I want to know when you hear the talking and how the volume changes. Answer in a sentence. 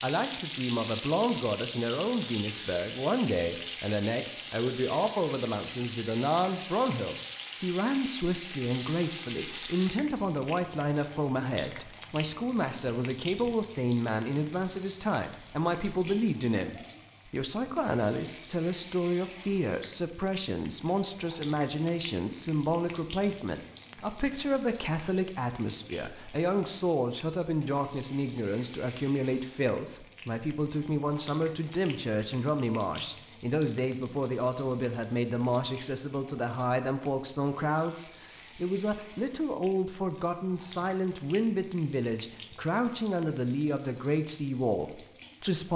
You can hear the talking from 0.0 to 45.7 s, at a steady volume.